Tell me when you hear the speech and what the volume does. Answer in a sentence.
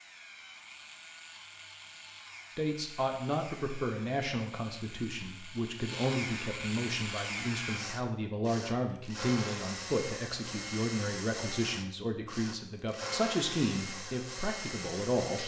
The speech can be heard from 2.5 to 15.4 s, at a steady volume.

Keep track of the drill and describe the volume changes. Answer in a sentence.
The loudness of the drill goes up.